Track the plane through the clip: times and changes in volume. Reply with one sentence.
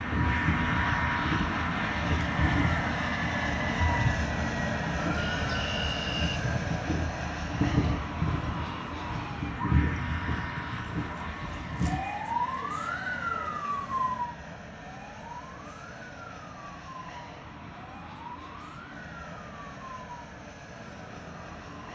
You can hear the plane from 0.0 to 21.9 s, getting quieter.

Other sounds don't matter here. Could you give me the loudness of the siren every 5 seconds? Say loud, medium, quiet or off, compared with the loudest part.
loud, loud, loud, quiet, quiet.